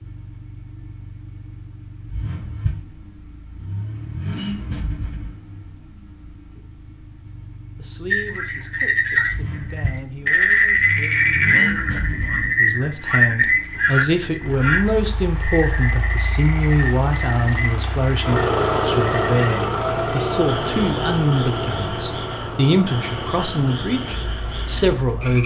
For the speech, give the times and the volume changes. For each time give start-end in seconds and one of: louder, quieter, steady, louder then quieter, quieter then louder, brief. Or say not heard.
7.8-25.4 louder.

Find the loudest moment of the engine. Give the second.
19 s.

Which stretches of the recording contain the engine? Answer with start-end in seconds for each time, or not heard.
0.0-25.4.